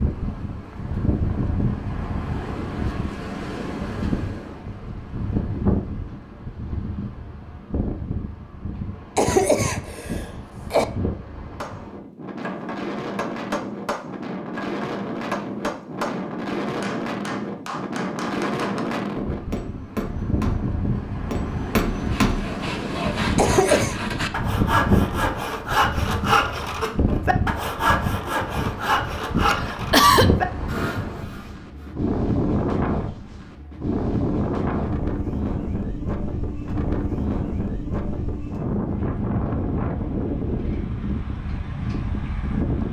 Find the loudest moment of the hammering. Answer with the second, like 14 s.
22 s.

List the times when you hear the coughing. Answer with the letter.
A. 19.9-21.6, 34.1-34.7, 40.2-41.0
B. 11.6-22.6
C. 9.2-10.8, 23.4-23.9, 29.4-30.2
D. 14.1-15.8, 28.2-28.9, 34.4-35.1
C.